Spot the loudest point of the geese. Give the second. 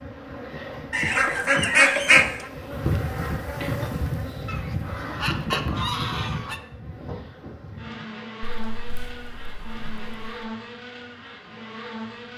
2 s.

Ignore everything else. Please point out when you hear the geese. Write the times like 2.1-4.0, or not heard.
0.9-2.2, 4.5-6.6, 8.4-10.3.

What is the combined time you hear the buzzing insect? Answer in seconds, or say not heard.
12 s.